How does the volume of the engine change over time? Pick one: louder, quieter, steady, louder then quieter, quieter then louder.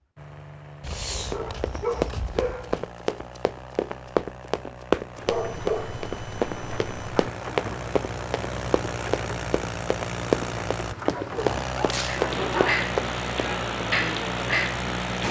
louder.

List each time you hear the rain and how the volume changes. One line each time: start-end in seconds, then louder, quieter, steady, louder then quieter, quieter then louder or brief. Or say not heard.
5.0-15.2 louder.